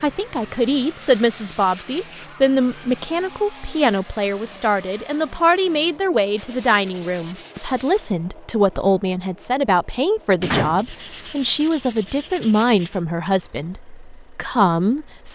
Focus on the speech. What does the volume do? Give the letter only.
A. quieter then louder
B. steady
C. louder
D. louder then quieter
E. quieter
B.